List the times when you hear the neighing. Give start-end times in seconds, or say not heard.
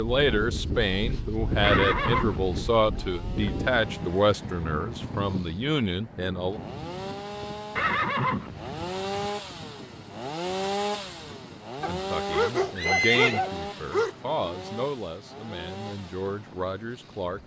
1.6-2.9, 7.8-9.3, 12.8-13.4.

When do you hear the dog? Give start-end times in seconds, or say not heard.
11.8-14.2.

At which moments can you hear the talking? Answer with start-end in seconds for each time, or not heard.
0.0-6.6, 11.8-17.4.